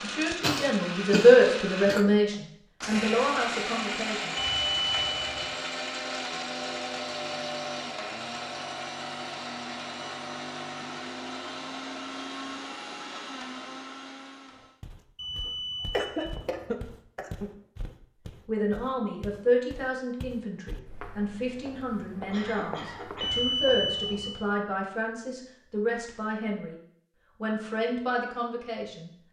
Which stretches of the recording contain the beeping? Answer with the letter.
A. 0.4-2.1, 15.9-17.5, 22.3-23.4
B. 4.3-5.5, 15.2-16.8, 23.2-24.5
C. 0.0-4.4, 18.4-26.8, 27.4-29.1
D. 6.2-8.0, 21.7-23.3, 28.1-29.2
B.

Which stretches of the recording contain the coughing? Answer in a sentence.
You can hear the coughing from 0.4 to 2.1 s, from 15.9 to 17.5 s and from 22.3 to 23.4 s.